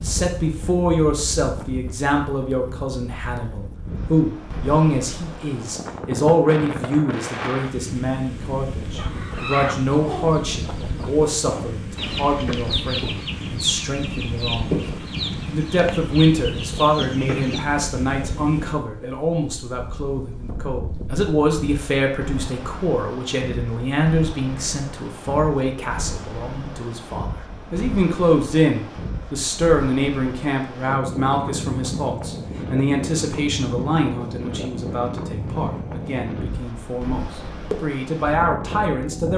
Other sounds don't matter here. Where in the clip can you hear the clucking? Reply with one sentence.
The clucking can be heard from 8.9 to 17.6 s.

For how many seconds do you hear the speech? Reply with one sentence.
The speech can be heard for 39 seconds in total.